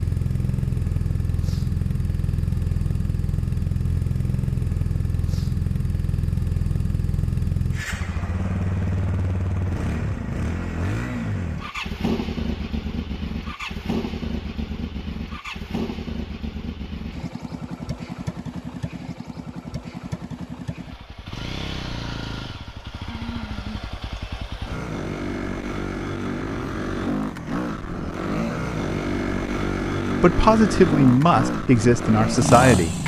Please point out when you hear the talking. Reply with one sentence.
You can hear the talking from 30.1 to 33.0 s.